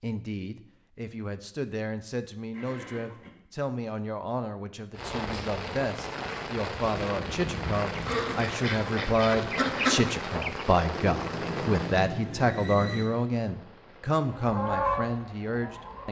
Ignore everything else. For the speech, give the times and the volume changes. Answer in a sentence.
You can hear the speech from 0.0 to 16.0 s, getting louder.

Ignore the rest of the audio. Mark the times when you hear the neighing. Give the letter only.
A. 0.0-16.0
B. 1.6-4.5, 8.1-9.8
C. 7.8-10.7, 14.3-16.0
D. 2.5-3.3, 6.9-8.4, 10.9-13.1
D.